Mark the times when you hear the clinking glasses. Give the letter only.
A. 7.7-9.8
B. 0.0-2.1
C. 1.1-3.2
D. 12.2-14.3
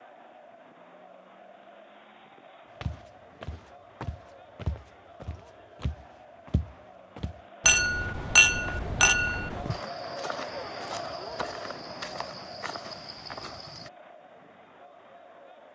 A.